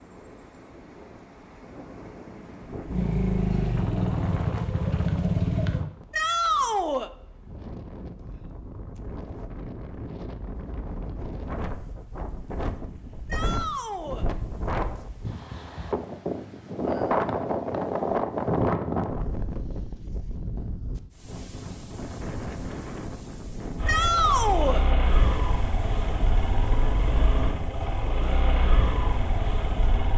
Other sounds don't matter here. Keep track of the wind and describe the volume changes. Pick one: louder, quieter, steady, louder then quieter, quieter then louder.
louder then quieter.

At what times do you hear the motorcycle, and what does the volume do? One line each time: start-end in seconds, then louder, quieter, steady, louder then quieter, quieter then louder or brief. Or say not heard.
2.9-5.8 brief
23.8-30.1 steady.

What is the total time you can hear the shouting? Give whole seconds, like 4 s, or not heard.
3 s.